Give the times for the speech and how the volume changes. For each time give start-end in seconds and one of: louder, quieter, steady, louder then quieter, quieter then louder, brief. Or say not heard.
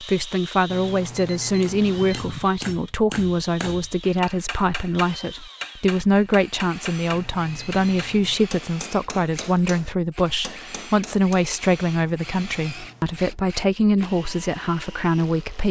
0.0-15.6 steady.